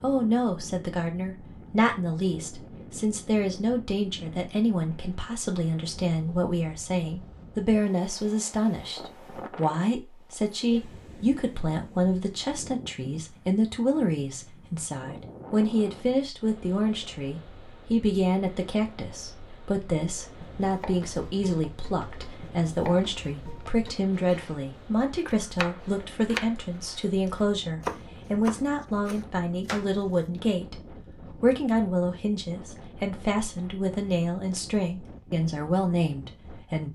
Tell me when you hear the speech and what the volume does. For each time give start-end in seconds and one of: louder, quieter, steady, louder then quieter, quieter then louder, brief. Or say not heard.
0.0-30.8 steady
31.4-36.9 steady.